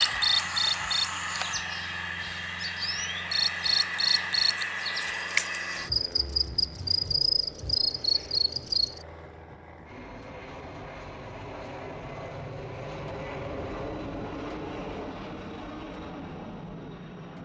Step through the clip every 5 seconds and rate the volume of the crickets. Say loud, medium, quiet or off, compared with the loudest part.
loud, loud, off, off.